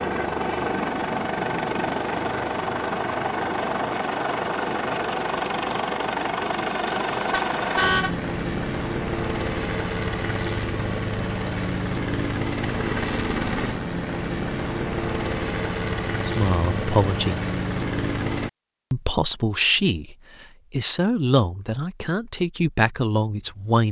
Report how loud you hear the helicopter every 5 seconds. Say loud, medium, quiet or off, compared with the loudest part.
loud, loud, loud, loud, off.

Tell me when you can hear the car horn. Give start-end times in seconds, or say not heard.
7.2-8.2.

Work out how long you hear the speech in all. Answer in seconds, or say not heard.
6 s.